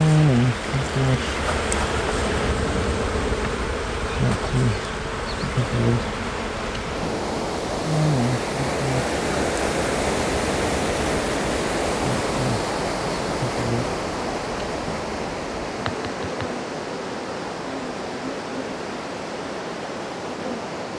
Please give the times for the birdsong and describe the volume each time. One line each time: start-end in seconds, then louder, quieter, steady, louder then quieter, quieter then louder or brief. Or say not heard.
not heard.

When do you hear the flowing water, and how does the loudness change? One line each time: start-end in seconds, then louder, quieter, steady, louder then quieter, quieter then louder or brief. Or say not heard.
0.0-20.9 louder then quieter.